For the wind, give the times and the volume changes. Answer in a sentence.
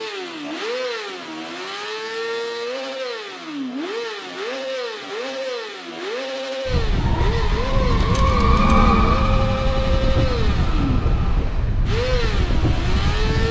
The wind can be heard from 6.7 to 13.4 s, at a steady volume.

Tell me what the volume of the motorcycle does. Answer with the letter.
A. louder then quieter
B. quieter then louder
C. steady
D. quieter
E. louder
C.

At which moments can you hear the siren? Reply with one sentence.
The siren can be heard from 7.0 to 11.4 s.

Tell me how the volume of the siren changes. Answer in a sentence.
The loudness of the siren goes up, then down.